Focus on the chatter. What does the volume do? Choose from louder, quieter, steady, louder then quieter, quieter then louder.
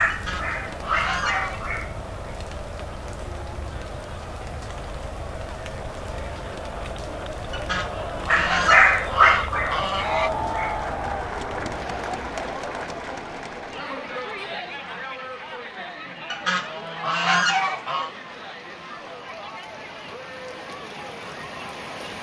louder then quieter.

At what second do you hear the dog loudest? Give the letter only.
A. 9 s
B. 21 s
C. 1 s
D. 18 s
A.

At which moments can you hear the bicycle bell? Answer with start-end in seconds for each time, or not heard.
not heard.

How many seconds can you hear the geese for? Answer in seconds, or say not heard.
6 s.